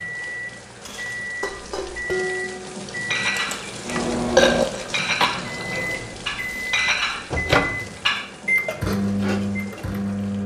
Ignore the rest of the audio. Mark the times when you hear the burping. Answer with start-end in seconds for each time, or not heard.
3.4-5.3.